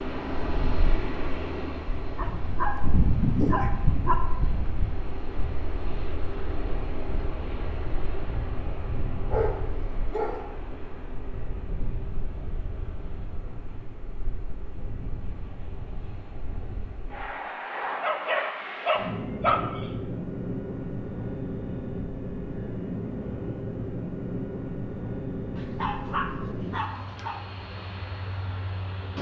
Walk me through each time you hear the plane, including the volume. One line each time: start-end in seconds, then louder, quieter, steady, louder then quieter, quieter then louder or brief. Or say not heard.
0.0-29.1 quieter then louder.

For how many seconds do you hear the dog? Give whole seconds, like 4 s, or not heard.
7 s.